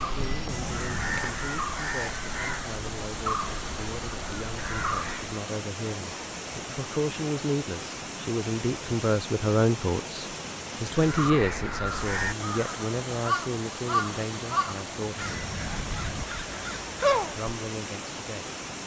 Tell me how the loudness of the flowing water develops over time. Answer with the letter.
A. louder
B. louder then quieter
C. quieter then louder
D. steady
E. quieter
D.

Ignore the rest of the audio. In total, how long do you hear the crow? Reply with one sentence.
The crow can be heard for 12 seconds in total.